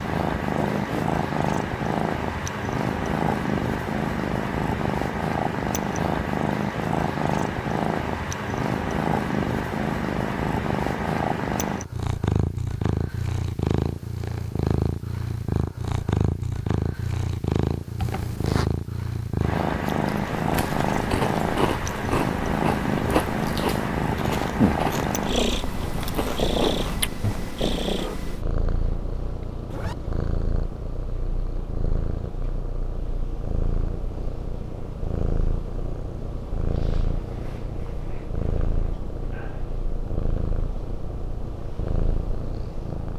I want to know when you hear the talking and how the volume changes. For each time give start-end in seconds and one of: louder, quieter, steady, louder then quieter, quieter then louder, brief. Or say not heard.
not heard.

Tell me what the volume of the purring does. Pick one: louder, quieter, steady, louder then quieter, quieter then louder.
quieter.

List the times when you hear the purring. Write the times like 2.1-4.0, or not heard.
0.0-43.1.